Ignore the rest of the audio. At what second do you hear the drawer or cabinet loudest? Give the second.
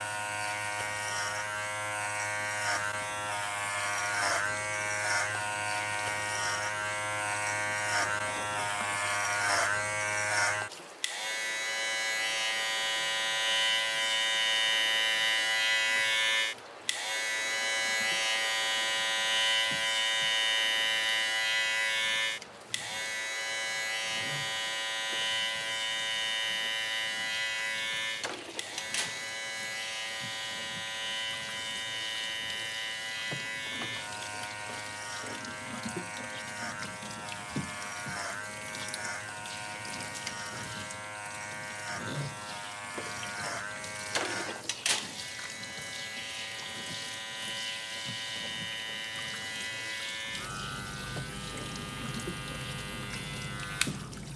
45 s.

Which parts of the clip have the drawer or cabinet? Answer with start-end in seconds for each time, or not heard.
7.7-8.9, 28.2-29.2, 44.1-45.1.